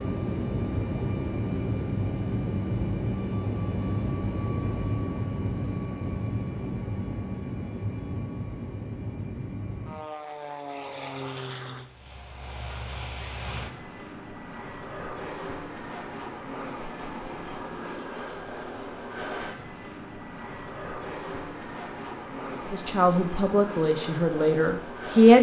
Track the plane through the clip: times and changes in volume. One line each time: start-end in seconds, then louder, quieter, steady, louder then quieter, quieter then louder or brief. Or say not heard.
0.0-25.3 quieter.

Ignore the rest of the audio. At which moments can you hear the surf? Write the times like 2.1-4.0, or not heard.
not heard.